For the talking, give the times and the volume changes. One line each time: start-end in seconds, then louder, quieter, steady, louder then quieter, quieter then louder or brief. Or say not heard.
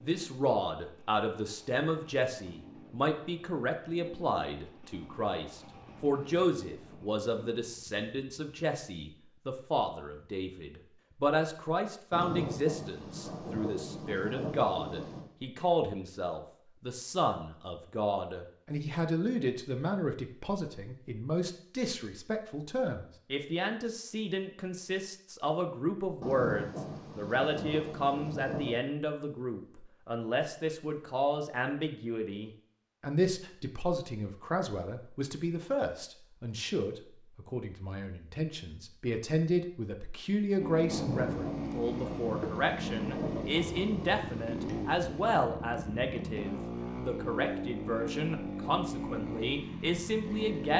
0.0-50.7 steady.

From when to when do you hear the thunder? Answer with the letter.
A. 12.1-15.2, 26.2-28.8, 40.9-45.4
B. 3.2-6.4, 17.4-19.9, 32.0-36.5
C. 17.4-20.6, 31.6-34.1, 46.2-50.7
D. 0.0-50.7
A.